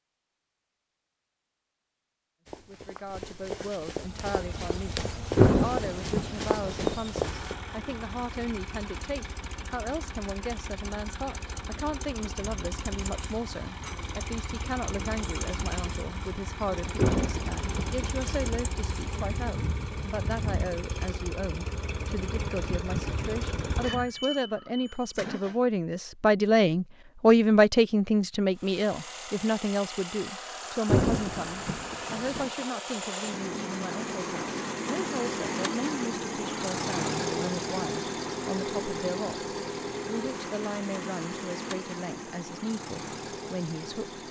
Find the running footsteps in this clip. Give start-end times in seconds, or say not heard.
2.5-7.5.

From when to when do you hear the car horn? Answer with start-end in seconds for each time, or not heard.
not heard.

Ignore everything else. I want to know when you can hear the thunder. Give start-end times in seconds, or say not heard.
5.3-7.0, 16.9-18.6, 30.9-32.5.